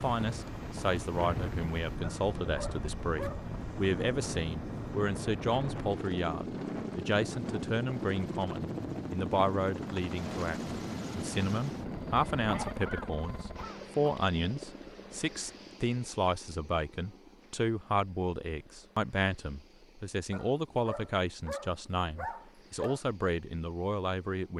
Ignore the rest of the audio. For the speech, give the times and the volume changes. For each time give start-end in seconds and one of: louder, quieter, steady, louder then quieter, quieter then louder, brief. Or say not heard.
0.0-24.5 steady.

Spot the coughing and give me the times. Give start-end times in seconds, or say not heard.
12.4-14.1.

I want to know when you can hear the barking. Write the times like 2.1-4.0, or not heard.
2.0-3.5, 20.3-23.0.